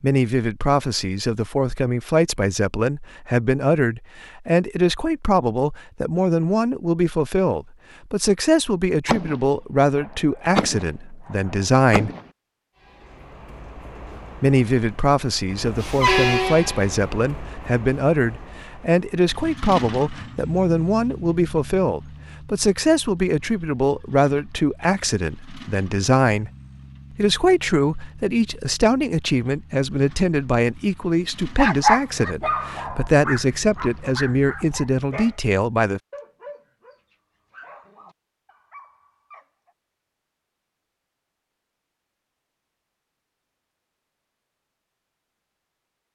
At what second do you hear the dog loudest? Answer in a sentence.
The volume of the dog peaks at 32 seconds.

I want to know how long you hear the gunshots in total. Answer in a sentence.
You can hear the gunshots for 3 seconds altogether.